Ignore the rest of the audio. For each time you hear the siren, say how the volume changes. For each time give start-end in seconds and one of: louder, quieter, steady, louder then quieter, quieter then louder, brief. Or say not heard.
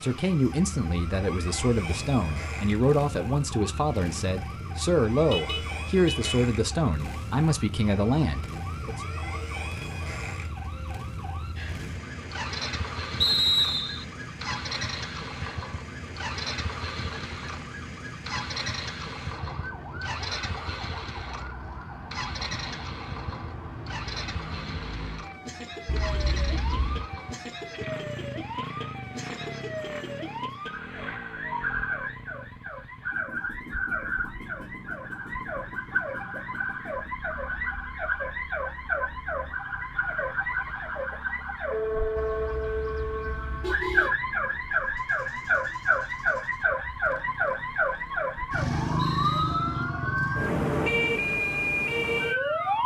0.0-52.8 louder.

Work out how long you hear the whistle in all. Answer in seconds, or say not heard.
2 s.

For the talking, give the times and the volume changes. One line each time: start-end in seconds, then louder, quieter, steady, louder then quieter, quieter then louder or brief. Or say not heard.
0.0-9.0 steady.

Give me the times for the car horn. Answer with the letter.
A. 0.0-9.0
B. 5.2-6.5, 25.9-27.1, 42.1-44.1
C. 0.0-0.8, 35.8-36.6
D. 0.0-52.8
B.